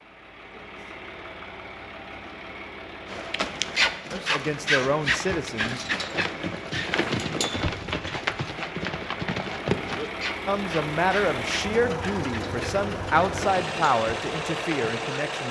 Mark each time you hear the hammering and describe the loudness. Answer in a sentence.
You can't hear the hammering here.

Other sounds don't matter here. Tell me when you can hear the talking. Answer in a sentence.
The talking can be heard from 4.1 to 5.8 s and from 10.4 to 15.4 s.